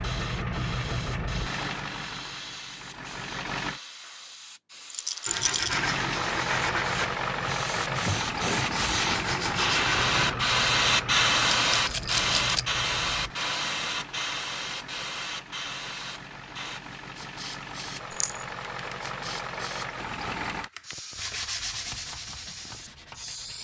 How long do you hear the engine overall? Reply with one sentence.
The engine can be heard for 19 seconds in total.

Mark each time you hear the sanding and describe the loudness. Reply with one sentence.
The sanding can be heard from 5.2 to 10.3 s, at a steady volume; and briefly from 21.1 to 23.5 s.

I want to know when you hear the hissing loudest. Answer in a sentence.
The volume of the hissing peaks at 11 seconds.